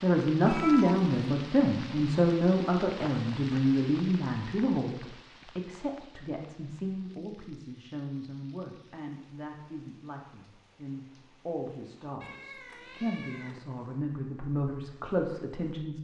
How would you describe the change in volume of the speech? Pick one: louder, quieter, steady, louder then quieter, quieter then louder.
quieter then louder.